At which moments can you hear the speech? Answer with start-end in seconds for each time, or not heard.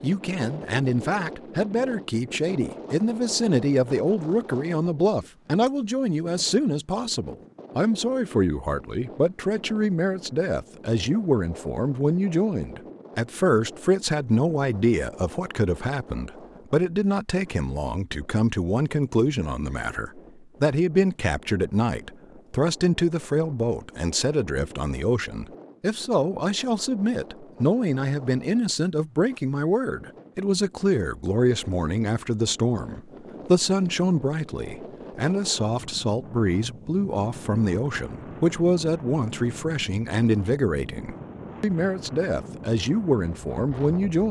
0.0-44.2.